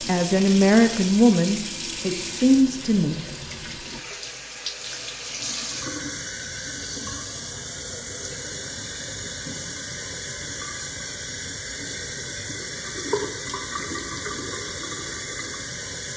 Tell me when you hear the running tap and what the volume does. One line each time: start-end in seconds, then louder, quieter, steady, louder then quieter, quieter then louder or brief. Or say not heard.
0.0-16.1 steady.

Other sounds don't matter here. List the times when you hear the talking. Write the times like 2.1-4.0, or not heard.
0.1-3.1.